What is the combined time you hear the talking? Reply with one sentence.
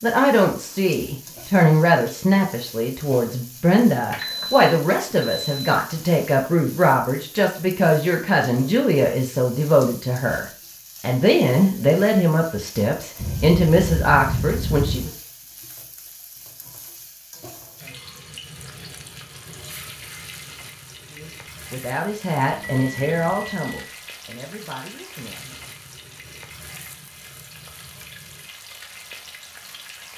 The talking can be heard for 20 seconds in total.